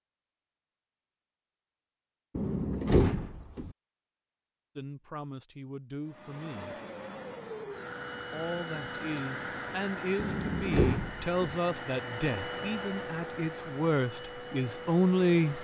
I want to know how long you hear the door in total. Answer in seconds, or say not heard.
3 s.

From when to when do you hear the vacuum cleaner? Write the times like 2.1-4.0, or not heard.
6.0-15.5.